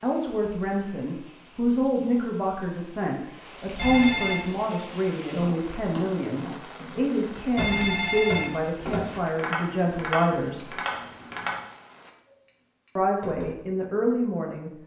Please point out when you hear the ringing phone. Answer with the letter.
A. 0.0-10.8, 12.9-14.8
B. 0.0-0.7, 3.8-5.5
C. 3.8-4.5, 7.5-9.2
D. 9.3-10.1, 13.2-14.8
C.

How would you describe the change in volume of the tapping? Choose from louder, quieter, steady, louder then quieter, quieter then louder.
louder then quieter.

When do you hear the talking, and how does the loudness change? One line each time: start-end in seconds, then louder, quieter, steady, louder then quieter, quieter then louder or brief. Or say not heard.
0.0-10.8 steady
12.9-14.8 brief.